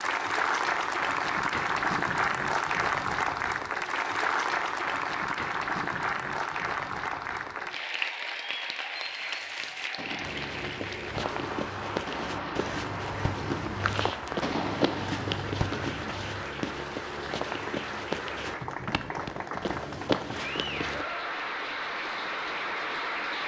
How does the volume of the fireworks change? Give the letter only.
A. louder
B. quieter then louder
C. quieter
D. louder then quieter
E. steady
A.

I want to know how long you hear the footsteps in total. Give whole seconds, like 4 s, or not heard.
11 s.